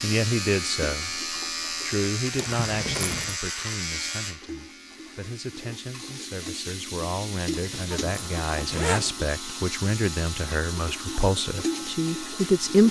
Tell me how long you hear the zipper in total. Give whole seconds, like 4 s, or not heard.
3 s.